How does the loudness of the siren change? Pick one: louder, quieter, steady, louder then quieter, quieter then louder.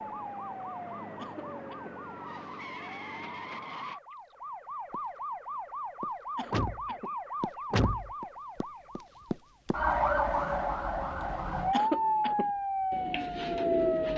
louder.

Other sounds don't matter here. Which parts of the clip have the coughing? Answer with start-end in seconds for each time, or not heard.
1.1-1.9, 6.3-7.2, 11.7-12.5.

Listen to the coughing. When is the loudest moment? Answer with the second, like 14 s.
12 s.